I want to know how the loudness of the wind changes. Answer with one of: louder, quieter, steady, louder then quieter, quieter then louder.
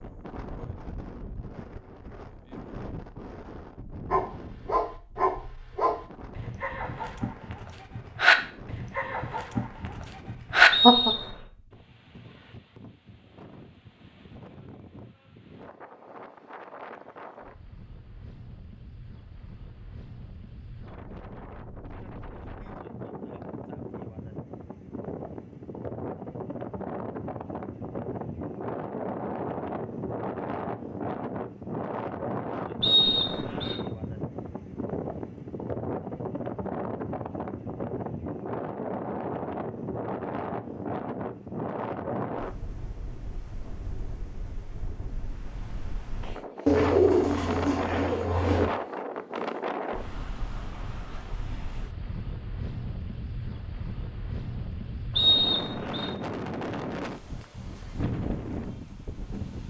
louder.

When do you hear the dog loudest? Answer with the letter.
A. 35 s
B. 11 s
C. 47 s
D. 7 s
B.